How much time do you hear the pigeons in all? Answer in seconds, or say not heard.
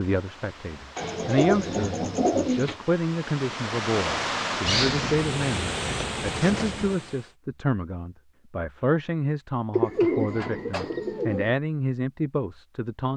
6 s.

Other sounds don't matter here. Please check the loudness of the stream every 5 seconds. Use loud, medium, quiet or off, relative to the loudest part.
loud, loud, off.